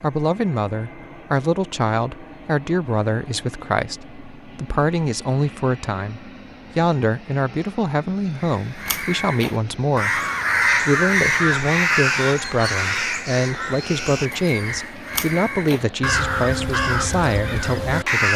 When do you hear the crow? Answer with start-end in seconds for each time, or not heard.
8.4-18.3.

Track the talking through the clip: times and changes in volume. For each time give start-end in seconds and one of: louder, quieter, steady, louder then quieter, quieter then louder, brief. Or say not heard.
0.0-10.2 steady
10.8-18.3 steady.